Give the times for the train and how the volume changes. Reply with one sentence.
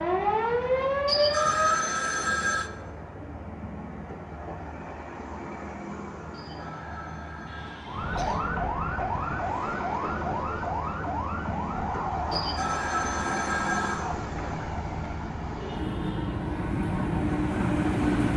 You can hear the train from 0.0 to 18.3 s, getting louder.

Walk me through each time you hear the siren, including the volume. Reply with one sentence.
The siren can be heard briefly from 0.0 to 1.9 s; and from 7.8 to 18.3 s, getting quieter.